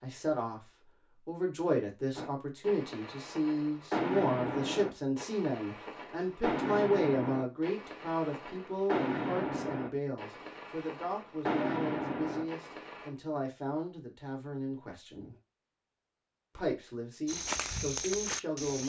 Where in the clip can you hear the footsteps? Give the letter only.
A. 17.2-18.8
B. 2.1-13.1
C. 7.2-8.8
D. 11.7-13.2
A.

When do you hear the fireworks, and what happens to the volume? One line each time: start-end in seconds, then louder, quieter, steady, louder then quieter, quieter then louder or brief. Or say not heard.
2.1-13.1 steady.